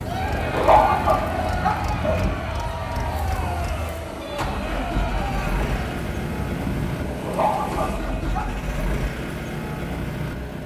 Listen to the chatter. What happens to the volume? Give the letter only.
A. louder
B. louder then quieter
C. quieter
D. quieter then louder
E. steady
E.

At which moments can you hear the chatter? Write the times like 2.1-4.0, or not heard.
0.0-6.0.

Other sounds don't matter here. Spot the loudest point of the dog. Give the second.
1 s.